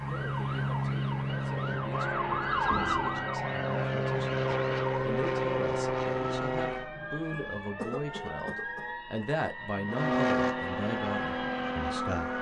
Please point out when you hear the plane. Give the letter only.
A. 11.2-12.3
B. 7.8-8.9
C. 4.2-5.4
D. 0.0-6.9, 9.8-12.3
D.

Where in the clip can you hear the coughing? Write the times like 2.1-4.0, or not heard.
7.8-8.9.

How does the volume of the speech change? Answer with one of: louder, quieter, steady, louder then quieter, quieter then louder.
louder.